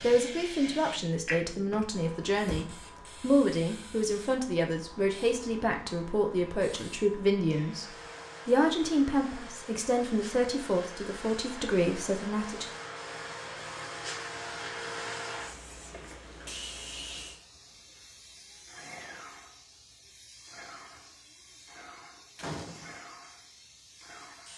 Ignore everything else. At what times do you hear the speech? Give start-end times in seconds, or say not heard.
0.0-7.8, 8.4-12.7.